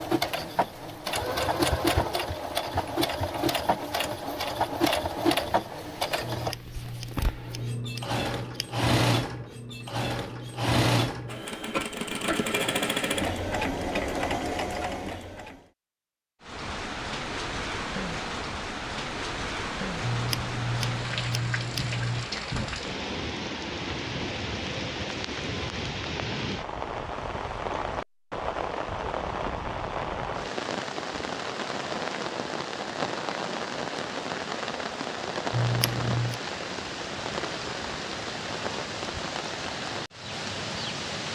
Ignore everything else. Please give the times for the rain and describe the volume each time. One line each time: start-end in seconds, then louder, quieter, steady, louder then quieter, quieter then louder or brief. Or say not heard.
16.4-41.3 steady.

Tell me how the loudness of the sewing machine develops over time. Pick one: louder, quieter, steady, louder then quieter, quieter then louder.
steady.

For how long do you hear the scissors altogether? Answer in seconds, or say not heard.
6 s.